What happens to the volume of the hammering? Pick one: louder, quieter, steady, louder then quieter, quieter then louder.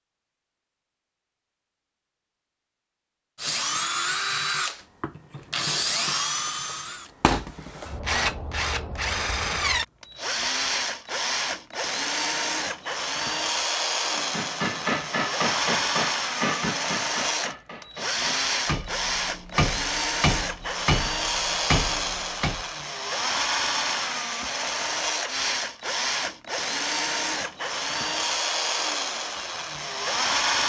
quieter then louder.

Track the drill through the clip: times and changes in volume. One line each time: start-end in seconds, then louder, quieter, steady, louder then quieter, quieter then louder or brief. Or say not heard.
3.4-30.6 steady.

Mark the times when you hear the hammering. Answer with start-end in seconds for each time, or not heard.
14.2-22.6.